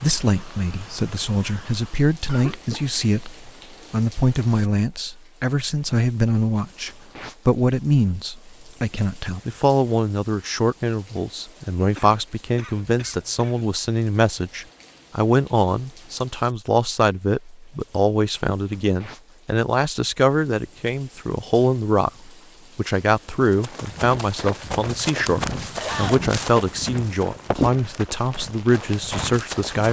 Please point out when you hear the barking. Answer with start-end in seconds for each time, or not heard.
not heard.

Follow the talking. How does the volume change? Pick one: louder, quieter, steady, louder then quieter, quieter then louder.
steady.